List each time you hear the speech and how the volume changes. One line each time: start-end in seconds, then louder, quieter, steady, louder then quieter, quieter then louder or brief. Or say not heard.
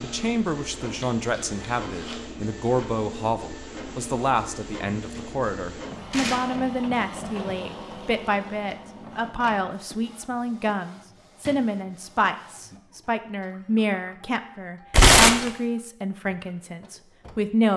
0.0-17.7 steady.